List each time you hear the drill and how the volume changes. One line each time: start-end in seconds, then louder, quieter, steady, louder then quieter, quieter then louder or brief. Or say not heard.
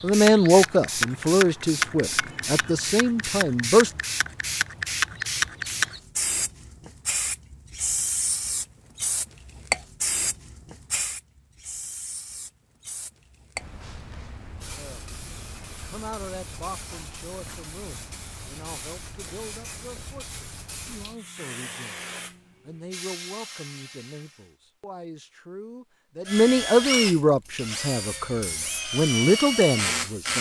26.2-30.3 quieter then louder.